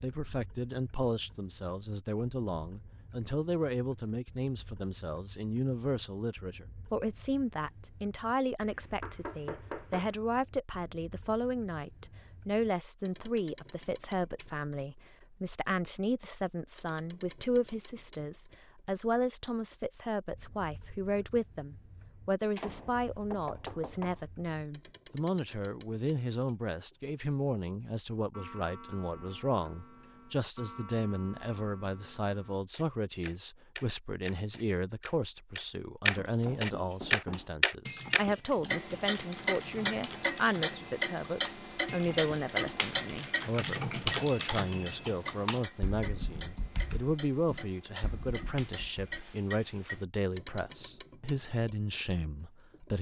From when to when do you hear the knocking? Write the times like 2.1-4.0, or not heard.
8.6-10.2, 22.6-24.2, 36.1-37.5.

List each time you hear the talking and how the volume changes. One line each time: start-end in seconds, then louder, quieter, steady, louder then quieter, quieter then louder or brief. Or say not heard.
0.0-52.9 steady.